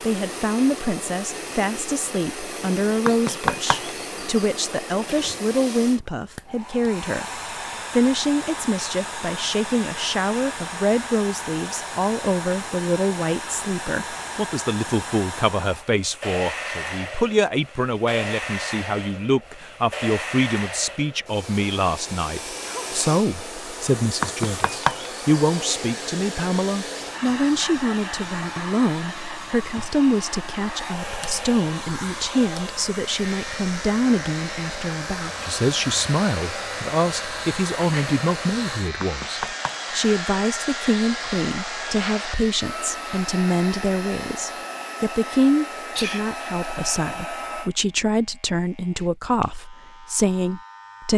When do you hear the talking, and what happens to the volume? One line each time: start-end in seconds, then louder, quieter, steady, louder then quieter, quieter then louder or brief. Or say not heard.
0.0-51.1 steady.